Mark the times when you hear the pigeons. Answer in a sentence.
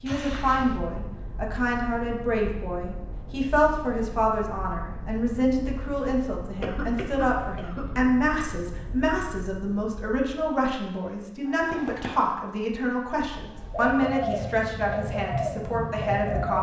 You can hear the pigeons from 13.7 to 16.5 s.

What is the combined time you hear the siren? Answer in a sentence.
The siren can't be heard in this clip.